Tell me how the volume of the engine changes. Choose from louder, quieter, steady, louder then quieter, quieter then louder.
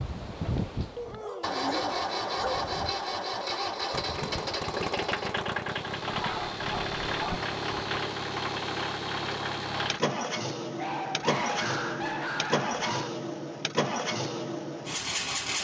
steady.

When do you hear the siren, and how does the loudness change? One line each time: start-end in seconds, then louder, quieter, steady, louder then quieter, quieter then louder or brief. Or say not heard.
not heard.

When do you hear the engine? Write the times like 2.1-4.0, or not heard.
0.0-15.6.